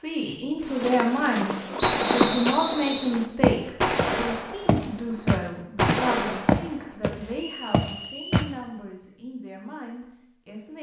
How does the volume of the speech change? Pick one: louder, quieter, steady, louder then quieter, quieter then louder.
quieter.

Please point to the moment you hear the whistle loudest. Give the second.
2 s.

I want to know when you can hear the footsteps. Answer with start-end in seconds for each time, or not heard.
0.6-8.5.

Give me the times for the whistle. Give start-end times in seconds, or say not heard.
1.8-3.2, 7.3-8.5.